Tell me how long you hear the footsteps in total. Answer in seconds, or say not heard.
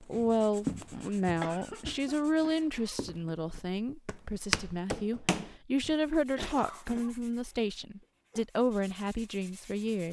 6 s.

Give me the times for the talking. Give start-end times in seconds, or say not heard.
0.0-10.0.